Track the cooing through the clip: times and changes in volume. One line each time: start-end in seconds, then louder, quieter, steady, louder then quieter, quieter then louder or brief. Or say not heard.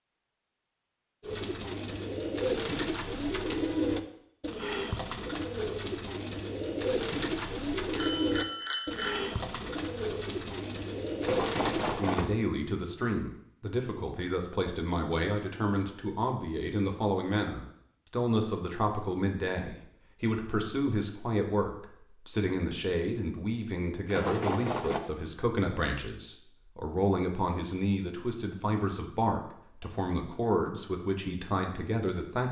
1.2-12.1 steady.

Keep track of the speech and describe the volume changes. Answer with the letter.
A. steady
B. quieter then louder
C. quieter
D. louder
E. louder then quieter
A.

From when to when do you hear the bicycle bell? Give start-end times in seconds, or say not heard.
8.0-9.3, 11.2-12.4, 24.1-25.0.